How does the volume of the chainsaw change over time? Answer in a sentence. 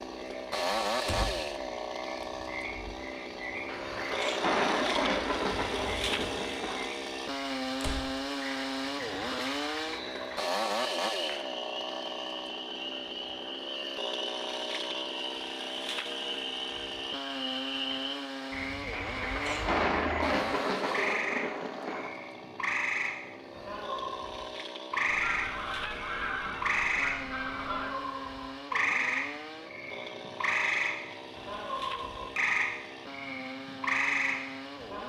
The loudness of the chainsaw goes down.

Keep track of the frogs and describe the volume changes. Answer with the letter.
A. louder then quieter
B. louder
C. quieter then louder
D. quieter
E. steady
B.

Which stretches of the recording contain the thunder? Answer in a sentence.
The thunder can be heard from 3.6 to 6.8 s and from 18.9 to 22.1 s.